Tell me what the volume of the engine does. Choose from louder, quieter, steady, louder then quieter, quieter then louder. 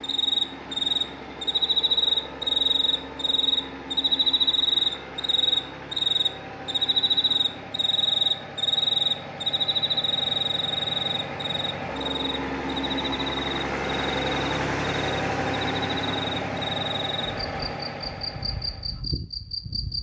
louder.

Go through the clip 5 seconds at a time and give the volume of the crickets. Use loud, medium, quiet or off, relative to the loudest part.
loud, loud, medium, medium.